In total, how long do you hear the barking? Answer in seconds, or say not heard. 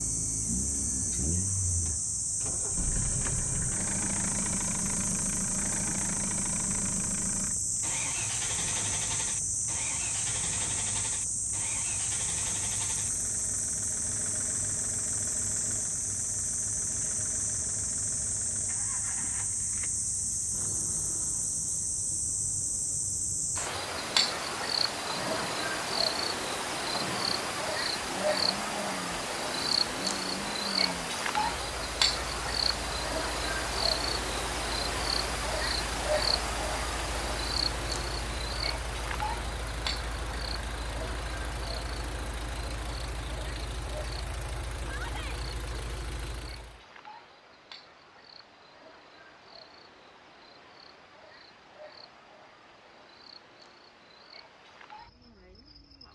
not heard.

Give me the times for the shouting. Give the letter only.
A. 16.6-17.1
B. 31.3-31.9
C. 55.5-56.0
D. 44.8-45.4
D.